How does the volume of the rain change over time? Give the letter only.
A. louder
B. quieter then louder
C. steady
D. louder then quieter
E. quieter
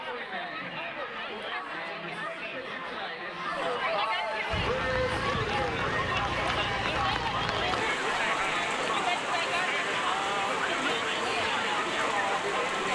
C.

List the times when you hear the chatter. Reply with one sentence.
You can hear the chatter from 0.0 to 12.9 s.